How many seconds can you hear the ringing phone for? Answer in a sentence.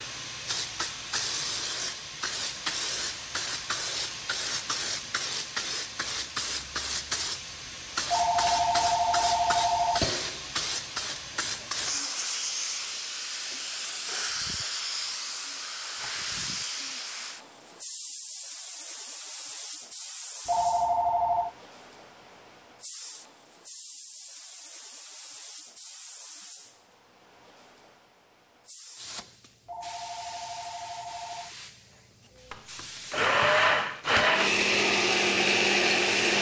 You can hear the ringing phone for 5 seconds altogether.